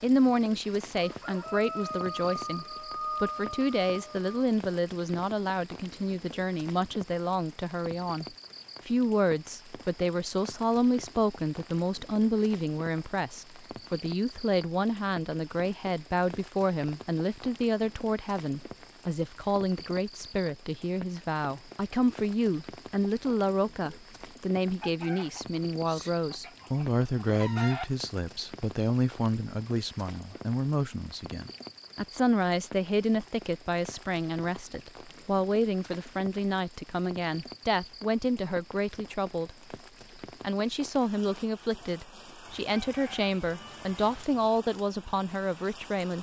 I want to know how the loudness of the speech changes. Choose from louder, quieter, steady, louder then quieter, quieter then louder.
steady.